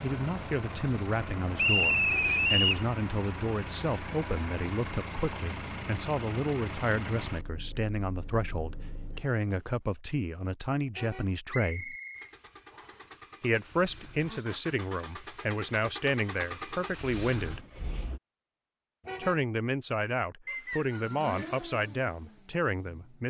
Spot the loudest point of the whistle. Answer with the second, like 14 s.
2 s.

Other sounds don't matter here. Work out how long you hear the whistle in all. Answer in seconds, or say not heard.
4 s.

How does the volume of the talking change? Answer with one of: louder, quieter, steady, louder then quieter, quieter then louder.
steady.